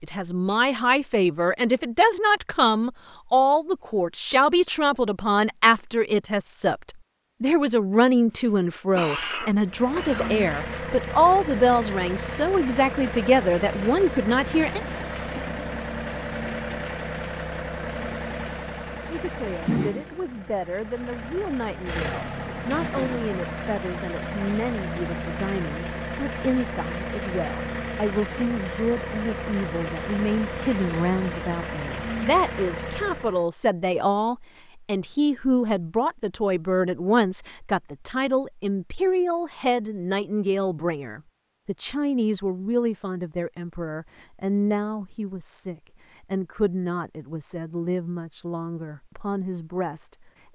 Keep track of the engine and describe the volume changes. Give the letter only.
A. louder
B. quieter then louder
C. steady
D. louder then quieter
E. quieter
C.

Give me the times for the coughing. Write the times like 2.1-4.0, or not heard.
8.3-10.6.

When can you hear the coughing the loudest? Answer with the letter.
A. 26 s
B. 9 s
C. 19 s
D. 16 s
B.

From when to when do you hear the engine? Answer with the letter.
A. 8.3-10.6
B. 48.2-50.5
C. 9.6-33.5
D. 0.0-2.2
C.